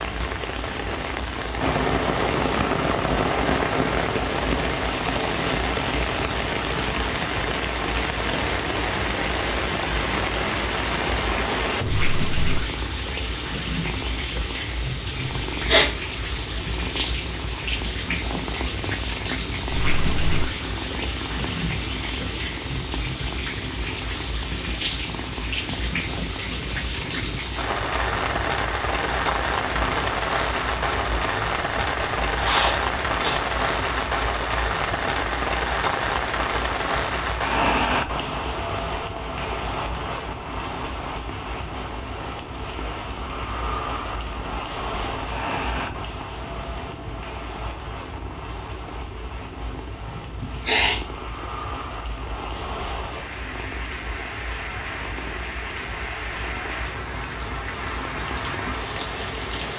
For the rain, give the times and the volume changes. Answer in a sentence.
The rain can be heard from 0.0 to 59.7 s, getting quieter.